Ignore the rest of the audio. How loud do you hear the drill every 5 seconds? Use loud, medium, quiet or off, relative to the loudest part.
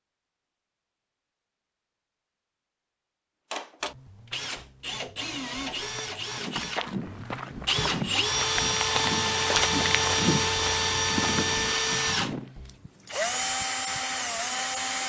medium, loud, loud.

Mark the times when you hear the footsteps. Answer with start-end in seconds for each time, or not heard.
5.8-12.5.